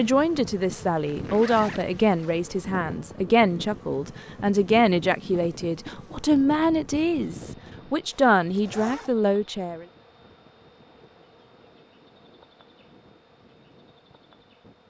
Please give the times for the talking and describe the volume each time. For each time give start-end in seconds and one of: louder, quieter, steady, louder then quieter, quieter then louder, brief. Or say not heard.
0.0-9.8 steady.